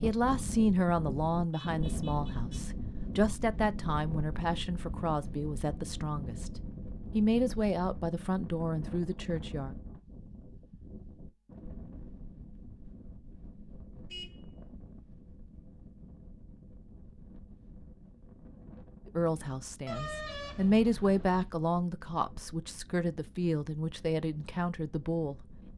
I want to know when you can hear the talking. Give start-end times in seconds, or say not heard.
0.0-6.5, 7.1-9.8, 19.1-25.4.